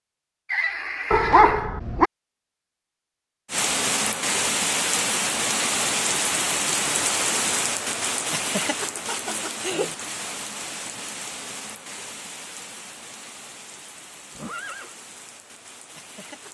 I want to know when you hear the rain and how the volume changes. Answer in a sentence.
The rain can be heard from 3.5 to 16.4 s, getting quieter.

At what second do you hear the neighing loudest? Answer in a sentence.
The volume of the neighing peaks at 1 second.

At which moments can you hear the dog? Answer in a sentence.
The dog can be heard from 1.1 to 2.1 s.